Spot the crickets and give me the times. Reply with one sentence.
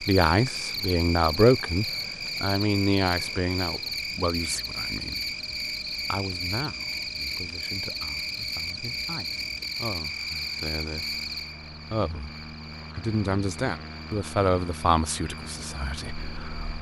The crickets can be heard from 0.0 to 16.7 s.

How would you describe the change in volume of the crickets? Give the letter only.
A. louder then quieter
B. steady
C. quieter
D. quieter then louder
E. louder
C.